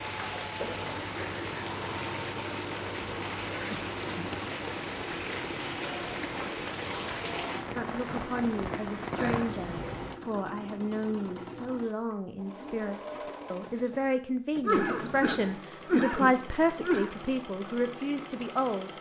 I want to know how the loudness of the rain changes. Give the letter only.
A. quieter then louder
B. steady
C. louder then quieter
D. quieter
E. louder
B.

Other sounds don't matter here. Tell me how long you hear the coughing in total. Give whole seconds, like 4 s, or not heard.
3 s.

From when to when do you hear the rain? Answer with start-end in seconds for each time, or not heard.
0.0-10.2.